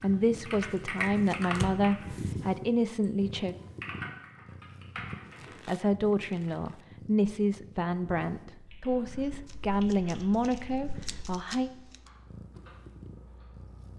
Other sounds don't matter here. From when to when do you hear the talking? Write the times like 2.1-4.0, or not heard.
0.0-3.5, 5.7-11.7.